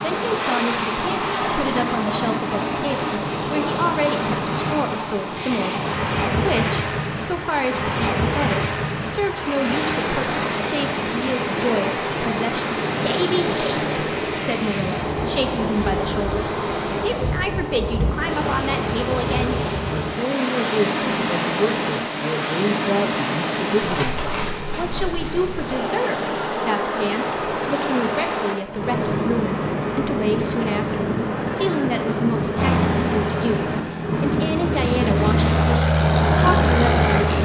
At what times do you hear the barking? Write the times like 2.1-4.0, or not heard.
not heard.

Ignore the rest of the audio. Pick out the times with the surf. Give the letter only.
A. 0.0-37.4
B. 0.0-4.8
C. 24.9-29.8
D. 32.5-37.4
A.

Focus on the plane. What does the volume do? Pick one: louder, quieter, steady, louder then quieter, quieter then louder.
louder.